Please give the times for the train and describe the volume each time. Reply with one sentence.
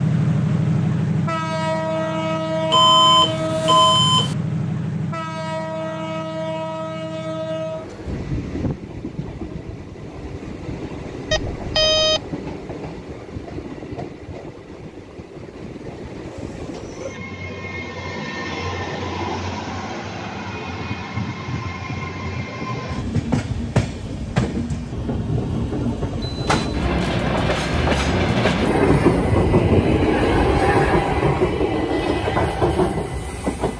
The train can be heard from 0.0 to 33.7 s, getting quieter then louder.